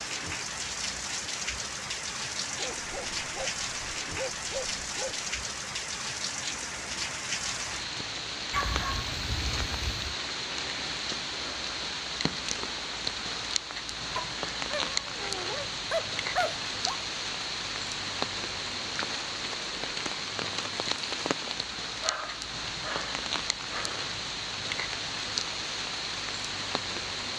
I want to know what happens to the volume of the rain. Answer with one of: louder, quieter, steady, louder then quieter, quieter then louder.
steady.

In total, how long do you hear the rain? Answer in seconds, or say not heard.
27 s.